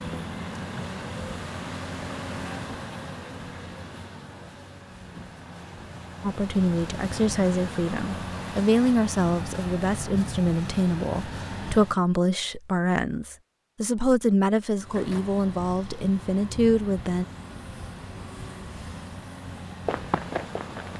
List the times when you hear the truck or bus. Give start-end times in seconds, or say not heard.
0.0-12.0, 14.8-20.9.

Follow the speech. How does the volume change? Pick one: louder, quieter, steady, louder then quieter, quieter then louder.
steady.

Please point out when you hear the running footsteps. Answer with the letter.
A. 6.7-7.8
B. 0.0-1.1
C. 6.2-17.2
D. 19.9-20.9
D.